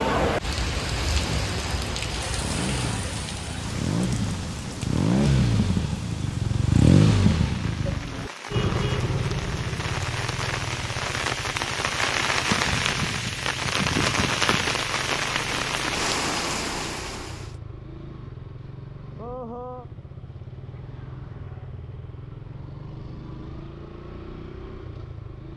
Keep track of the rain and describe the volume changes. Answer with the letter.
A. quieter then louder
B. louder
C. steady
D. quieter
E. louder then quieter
A.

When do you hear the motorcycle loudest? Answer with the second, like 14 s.
7 s.